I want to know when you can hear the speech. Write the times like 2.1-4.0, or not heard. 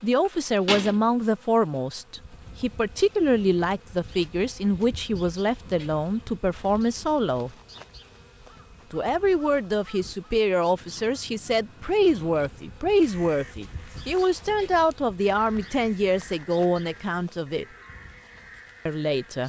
0.0-7.5, 8.9-17.6, 18.9-19.4.